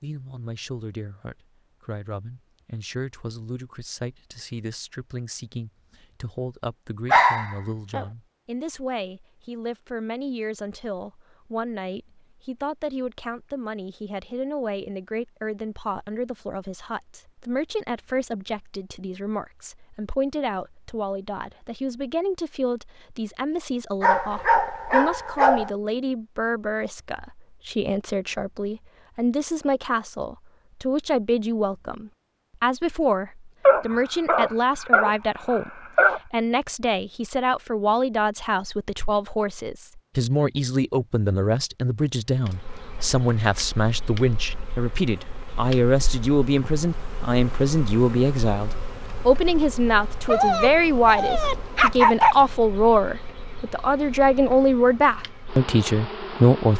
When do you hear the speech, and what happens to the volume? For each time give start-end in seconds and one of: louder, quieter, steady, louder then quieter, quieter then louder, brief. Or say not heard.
0.0-56.7 louder.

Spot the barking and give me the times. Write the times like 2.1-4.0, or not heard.
7.0-8.1, 24.0-25.7, 33.6-36.2, 50.2-52.5.